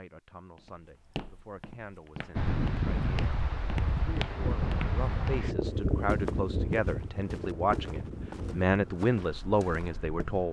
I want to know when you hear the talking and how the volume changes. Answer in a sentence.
The talking can be heard from 0.0 to 10.4 s, getting louder.